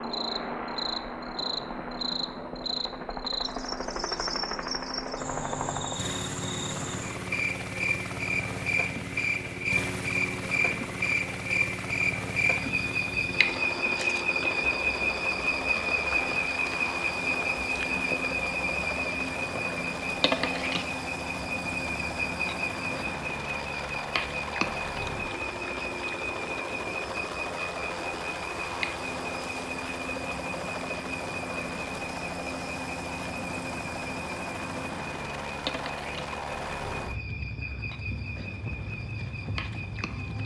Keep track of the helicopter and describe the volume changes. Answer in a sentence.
The loudness of the helicopter stays about the same.